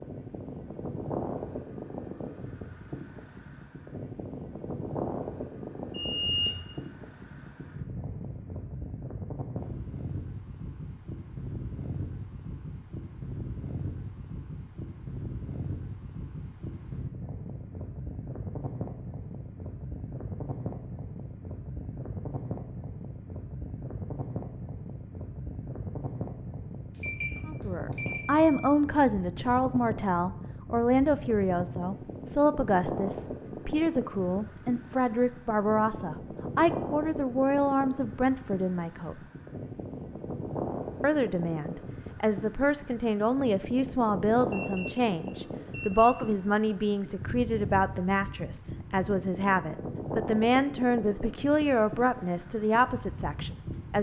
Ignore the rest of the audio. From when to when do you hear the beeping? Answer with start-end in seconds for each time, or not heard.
5.9-6.6, 26.9-28.6, 44.5-46.1.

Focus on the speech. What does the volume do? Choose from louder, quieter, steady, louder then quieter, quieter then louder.
steady.